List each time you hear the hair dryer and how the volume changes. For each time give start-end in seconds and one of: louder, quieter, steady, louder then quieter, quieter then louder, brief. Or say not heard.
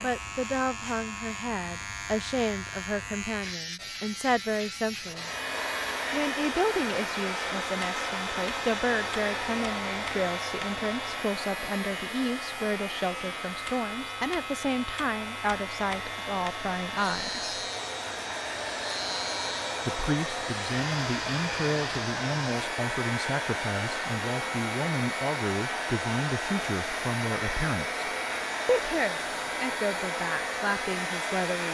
5.0-31.6 quieter then louder.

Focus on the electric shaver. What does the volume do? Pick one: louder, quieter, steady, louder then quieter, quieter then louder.
steady.